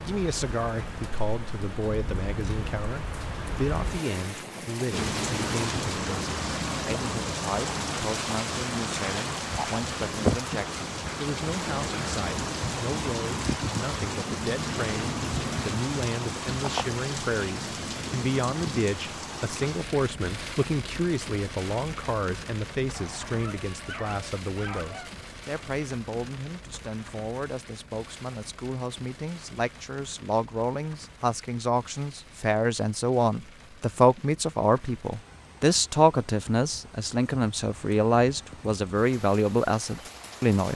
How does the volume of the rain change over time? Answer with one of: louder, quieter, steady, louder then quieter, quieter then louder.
quieter.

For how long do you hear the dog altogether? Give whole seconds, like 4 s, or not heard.
2 s.